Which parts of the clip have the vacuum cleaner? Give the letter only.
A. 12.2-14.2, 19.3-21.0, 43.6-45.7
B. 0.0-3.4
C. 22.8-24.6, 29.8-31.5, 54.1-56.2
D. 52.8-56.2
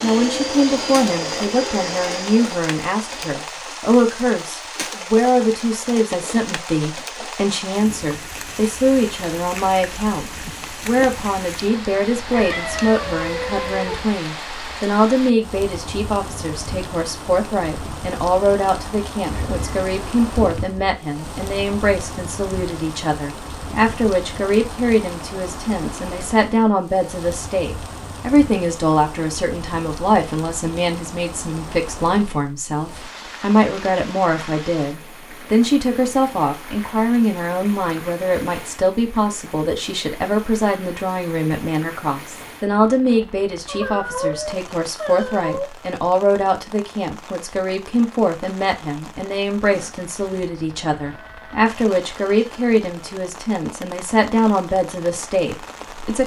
B.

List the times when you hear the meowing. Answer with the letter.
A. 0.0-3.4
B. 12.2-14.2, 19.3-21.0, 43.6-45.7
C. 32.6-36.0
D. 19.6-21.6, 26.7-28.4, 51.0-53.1
B.